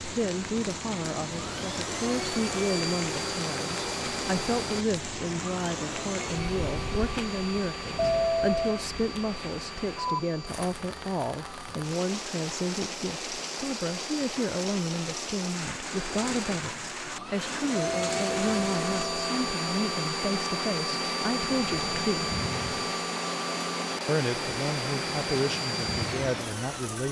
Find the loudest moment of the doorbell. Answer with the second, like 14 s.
8 s.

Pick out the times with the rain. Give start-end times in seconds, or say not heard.
0.0-27.0.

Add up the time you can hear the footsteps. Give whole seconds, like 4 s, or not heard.
not heard.